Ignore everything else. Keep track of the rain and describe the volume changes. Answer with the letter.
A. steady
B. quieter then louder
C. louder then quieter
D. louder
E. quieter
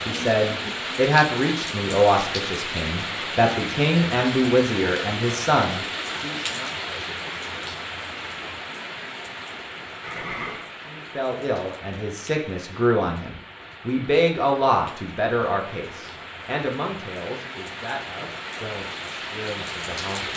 B.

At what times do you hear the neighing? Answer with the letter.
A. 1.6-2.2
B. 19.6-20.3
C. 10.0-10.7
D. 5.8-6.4
C.